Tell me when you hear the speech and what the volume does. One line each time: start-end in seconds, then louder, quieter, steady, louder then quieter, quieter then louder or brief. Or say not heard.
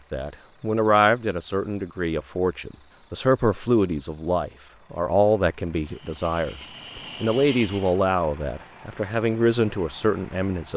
0.1-10.7 steady.